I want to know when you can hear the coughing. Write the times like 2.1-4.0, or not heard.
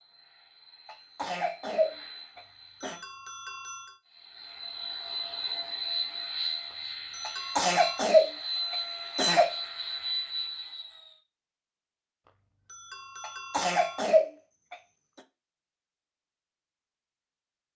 0.8-3.0, 7.2-9.5, 13.2-15.2.